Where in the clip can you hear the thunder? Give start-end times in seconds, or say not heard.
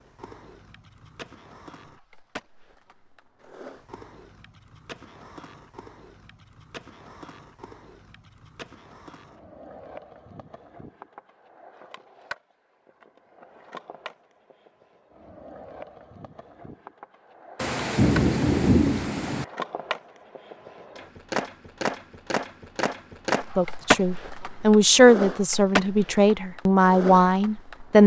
17.6-19.4.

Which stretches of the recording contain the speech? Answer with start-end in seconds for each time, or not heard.
23.6-28.0.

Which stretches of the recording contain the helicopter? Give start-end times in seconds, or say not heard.
not heard.